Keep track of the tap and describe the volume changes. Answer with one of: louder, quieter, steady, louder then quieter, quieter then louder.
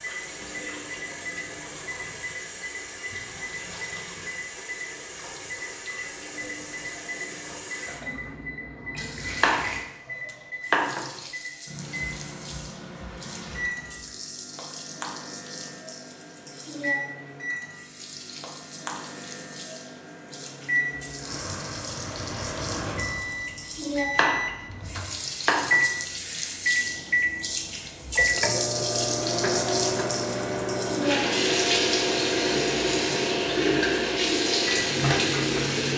louder.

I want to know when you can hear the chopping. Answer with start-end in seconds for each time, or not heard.
9.4-11.2, 24.1-25.9.